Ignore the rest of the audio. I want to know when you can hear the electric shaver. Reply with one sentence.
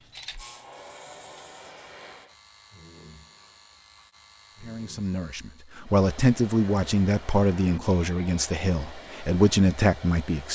You can hear the electric shaver from 0.0 to 5.8 s.